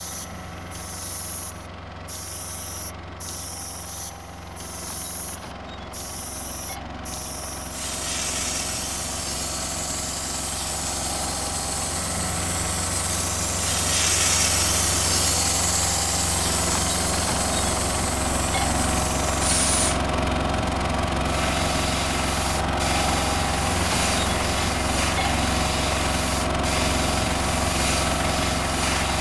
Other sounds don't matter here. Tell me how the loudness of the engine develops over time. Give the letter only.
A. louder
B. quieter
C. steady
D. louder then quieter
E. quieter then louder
A.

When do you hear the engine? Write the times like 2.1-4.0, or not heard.
0.0-29.1.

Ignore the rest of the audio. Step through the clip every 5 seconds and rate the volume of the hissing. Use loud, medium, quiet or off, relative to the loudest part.
quiet, medium, loud, loud, loud, loud.